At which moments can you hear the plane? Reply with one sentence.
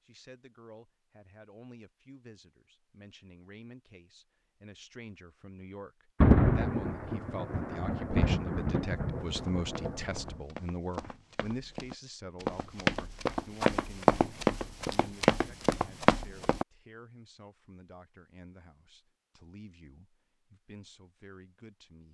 You can't hear the plane here.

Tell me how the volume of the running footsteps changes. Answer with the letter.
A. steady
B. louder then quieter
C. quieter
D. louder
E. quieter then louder
D.